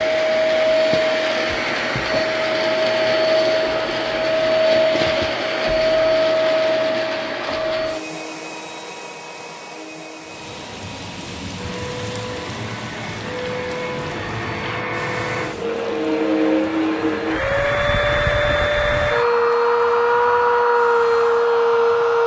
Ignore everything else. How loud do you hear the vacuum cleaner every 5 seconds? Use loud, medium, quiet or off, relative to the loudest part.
loud, medium, quiet, loud, loud.